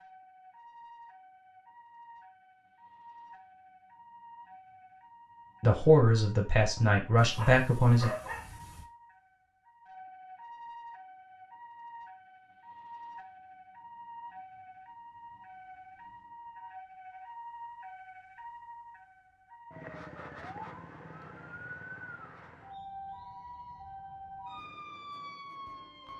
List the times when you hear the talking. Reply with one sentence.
The talking can be heard from 5.6 to 8.1 s.